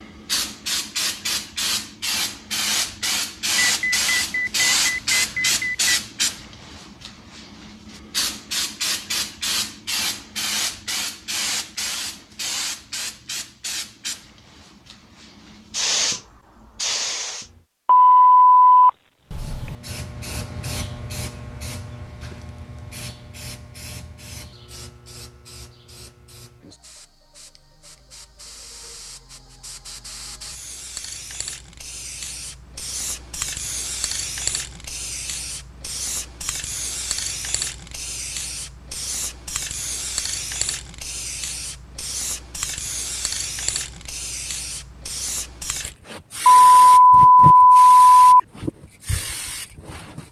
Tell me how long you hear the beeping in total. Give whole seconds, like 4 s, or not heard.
6 s.